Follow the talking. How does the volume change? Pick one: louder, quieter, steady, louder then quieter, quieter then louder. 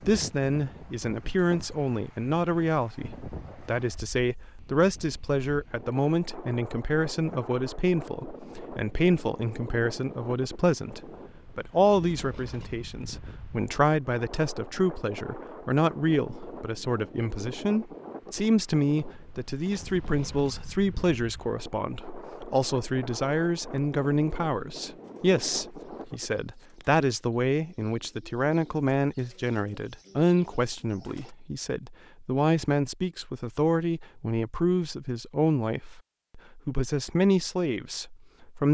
steady.